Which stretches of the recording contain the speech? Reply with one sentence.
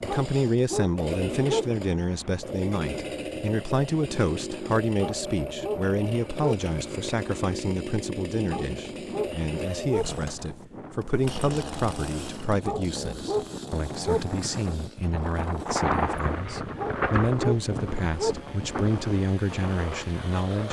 You can hear the speech from 0.0 to 20.6 s.